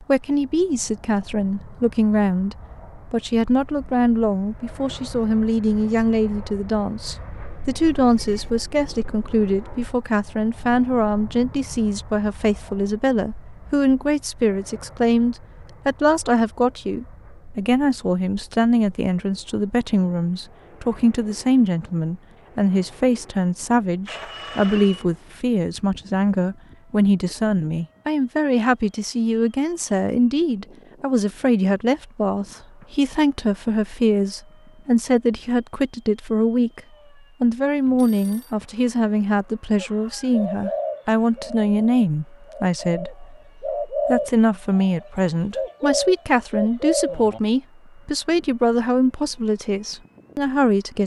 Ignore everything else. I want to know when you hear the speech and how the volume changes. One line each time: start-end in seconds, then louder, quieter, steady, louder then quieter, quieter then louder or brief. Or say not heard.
0.1-36.8 steady
37.4-51.0 steady.